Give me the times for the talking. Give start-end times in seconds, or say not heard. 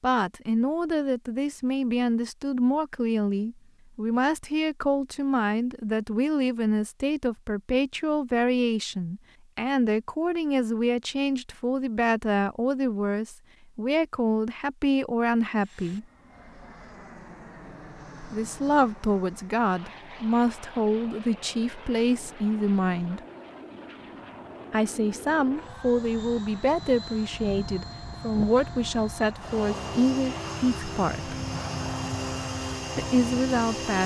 0.0-16.1, 18.2-23.2, 24.7-31.4, 33.0-34.0.